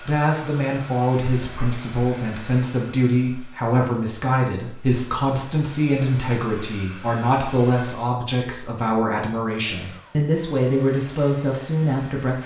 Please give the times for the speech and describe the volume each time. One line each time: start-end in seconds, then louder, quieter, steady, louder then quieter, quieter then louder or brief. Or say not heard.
0.0-12.4 steady.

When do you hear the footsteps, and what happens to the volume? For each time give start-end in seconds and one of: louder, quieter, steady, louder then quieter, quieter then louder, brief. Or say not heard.
not heard.